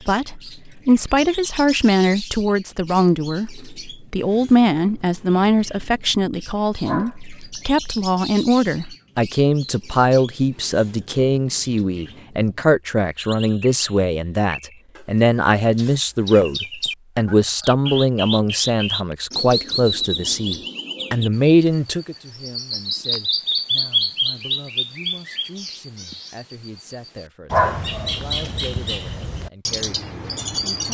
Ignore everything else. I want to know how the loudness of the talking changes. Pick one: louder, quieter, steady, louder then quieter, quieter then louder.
quieter.